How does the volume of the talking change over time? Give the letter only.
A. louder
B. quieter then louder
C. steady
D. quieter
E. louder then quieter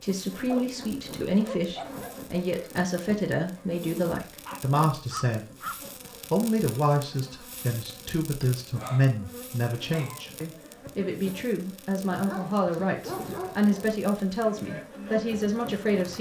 C.